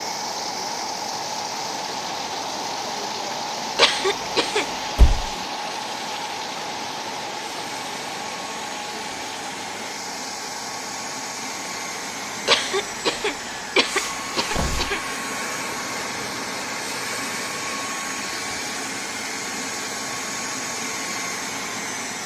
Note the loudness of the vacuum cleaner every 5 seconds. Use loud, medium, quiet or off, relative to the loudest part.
medium, medium, loud, loud, loud.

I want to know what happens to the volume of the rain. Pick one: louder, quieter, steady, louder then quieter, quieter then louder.
quieter.